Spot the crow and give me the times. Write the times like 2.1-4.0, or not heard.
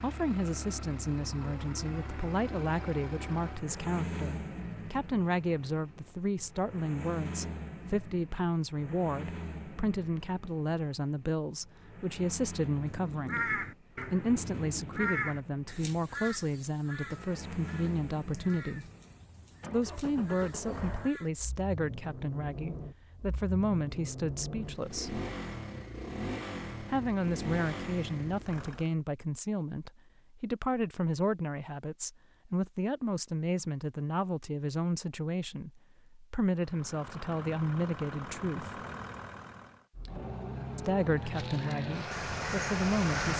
12.8-21.3, 41.1-43.3.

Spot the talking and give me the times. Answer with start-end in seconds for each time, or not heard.
0.0-18.9, 19.7-25.2, 26.8-38.8, 40.8-43.3.